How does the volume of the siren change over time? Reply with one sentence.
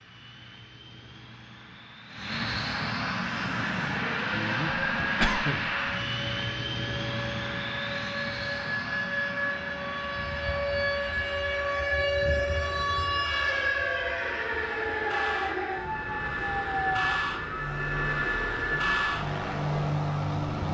The loudness of the siren goes up, then down.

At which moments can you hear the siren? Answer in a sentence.
The siren can be heard from 3.2 to 20.6 s.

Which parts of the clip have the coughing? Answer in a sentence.
The coughing can be heard from 4.3 to 5.7 s.